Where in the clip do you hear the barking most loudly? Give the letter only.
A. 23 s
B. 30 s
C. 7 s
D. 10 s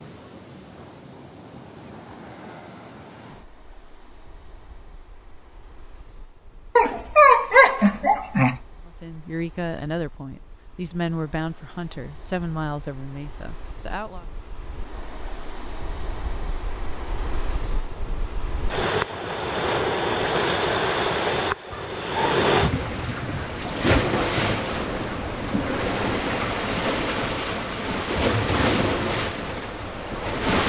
C.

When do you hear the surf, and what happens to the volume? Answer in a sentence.
The surf can be heard from 0.0 to 30.6 s, getting quieter then louder.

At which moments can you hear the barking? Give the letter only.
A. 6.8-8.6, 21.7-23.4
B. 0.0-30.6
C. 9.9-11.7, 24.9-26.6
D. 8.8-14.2
A.